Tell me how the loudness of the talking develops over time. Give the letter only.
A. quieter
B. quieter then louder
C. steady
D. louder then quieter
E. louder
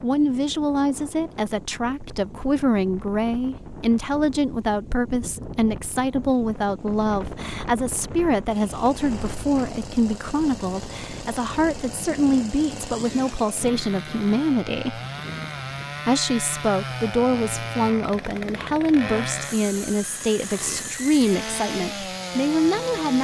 C.